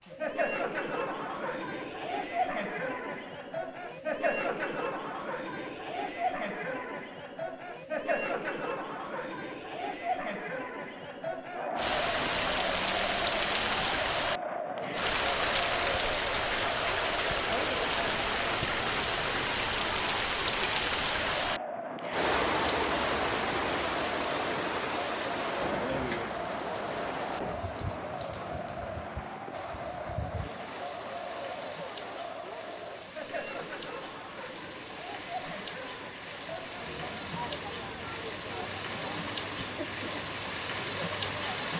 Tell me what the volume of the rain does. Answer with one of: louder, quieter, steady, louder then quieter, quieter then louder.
quieter then louder.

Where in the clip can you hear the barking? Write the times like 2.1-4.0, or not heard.
not heard.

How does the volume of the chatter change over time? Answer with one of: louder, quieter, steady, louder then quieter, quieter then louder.
quieter.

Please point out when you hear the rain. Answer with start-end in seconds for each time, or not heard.
11.8-41.7.